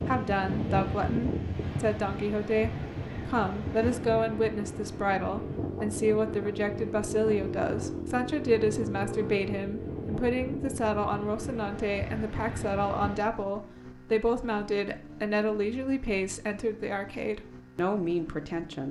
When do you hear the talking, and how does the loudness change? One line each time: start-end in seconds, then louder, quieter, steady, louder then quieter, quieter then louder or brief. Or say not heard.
0.0-18.8 steady.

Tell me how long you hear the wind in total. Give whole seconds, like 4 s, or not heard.
13 s.